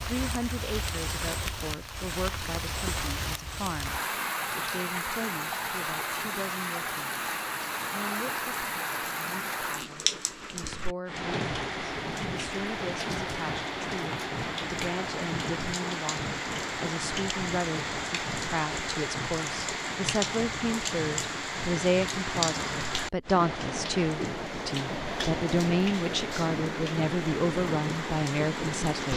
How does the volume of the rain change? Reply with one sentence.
The loudness of the rain stays about the same.